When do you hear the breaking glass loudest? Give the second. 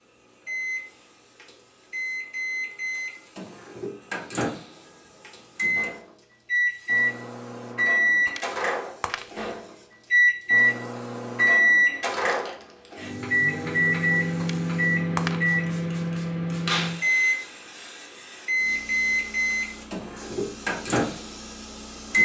15 s.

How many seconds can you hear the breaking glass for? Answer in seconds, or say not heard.
2 s.